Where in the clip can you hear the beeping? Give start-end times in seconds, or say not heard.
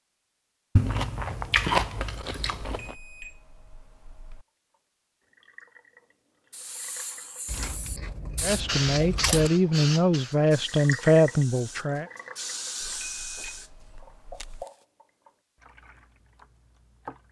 2.8-4.5, 12.8-14.7.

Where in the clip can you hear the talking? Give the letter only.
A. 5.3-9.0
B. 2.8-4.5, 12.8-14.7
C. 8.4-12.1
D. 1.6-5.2
C.